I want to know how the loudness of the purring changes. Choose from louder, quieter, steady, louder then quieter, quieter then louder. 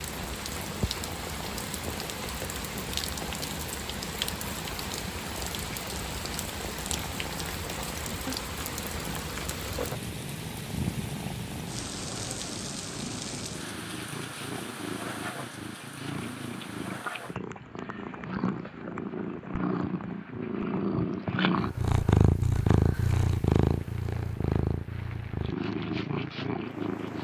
louder.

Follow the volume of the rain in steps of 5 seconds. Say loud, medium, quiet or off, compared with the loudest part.
loud, loud, loud, medium, quiet, medium.